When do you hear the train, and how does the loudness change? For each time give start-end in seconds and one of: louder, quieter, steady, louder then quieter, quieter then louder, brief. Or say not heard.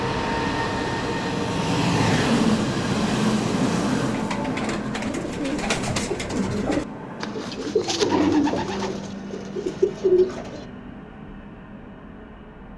0.0-12.7 quieter.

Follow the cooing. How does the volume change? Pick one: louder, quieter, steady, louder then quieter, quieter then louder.
louder.